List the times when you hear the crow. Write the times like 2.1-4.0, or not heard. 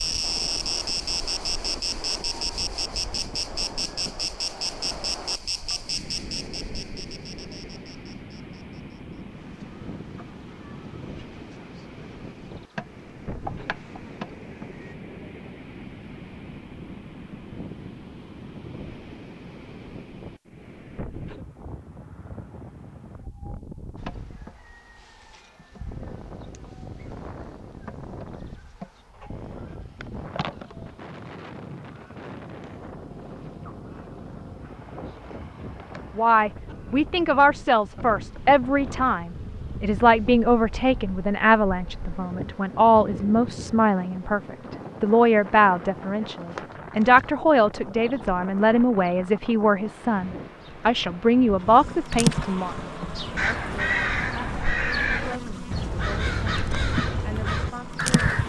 53.4-58.4.